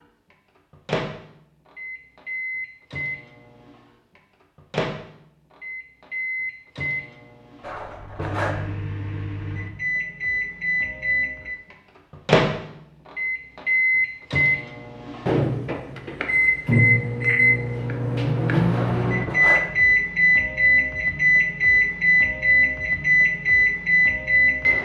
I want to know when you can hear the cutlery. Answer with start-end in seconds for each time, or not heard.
7.6-8.7, 18.7-19.8.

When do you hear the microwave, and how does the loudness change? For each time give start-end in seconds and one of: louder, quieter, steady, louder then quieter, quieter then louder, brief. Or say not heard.
0.0-24.7 louder.